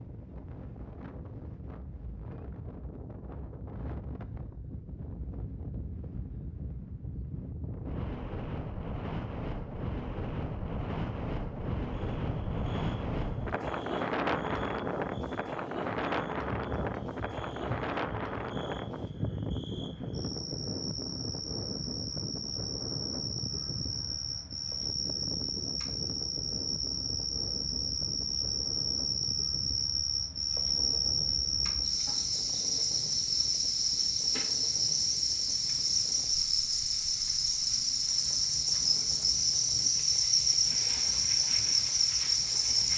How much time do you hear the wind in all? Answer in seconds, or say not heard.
43 s.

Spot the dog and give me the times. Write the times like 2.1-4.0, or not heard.
not heard.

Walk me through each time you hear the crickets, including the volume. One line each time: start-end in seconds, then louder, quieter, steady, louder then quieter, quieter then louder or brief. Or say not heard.
11.9-42.9 louder.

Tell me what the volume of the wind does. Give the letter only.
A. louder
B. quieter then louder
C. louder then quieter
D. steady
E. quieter
C.